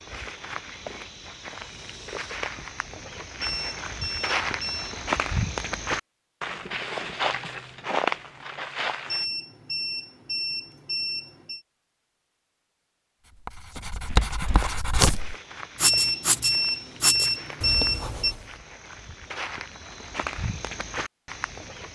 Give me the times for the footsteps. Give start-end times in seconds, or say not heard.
0.0-9.2, 14.1-21.9.